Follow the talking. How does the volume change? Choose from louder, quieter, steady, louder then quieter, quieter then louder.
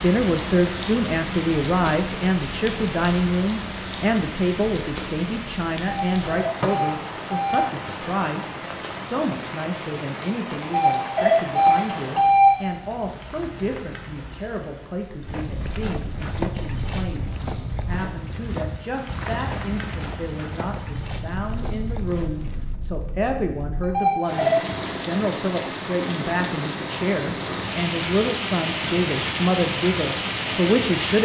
quieter then louder.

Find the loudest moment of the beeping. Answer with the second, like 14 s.
12 s.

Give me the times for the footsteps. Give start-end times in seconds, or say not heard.
15.2-22.8.